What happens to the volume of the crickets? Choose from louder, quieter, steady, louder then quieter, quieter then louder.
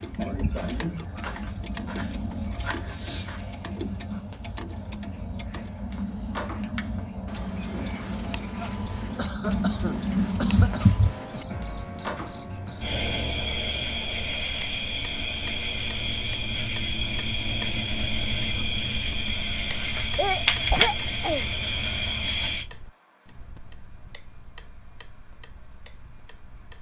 louder then quieter.